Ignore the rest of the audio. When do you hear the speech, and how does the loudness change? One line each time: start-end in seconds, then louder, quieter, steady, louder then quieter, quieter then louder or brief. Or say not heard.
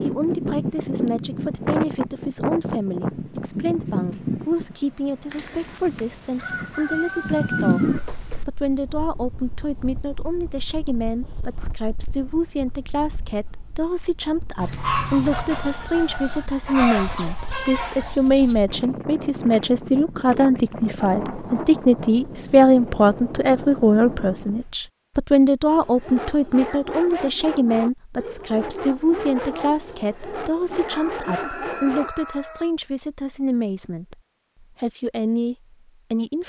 0.0-36.4 louder then quieter.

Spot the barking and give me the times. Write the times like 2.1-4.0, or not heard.
25.8-32.1.